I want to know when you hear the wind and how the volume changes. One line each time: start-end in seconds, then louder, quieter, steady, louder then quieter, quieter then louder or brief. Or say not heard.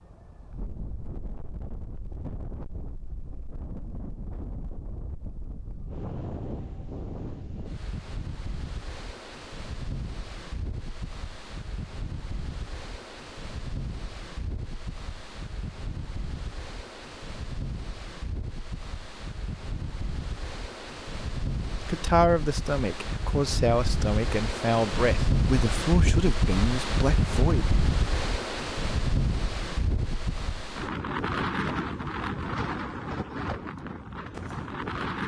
0.0-35.2 louder.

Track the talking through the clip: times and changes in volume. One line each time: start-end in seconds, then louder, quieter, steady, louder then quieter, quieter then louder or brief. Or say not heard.
21.9-27.6 steady.